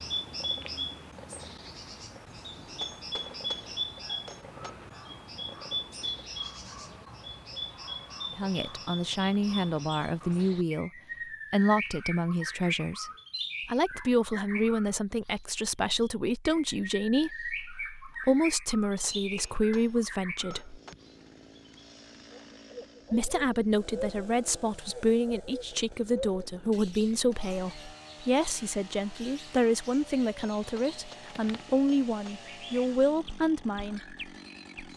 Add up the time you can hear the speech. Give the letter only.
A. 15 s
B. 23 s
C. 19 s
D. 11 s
B.